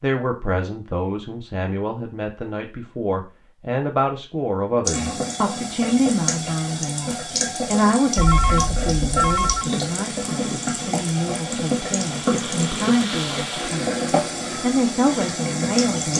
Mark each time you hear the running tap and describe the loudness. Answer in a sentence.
The running tap can be heard from 4.8 to 16.1 s, at a steady volume.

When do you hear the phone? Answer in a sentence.
You can hear the phone from 8.2 to 9.7 s.